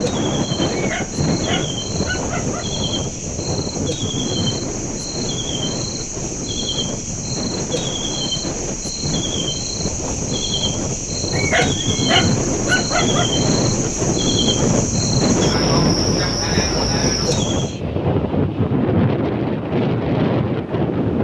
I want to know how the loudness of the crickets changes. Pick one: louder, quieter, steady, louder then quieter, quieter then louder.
louder.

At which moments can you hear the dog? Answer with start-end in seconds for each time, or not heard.
0.7-2.6, 11.3-13.3.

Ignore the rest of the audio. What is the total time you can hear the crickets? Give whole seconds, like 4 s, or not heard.
18 s.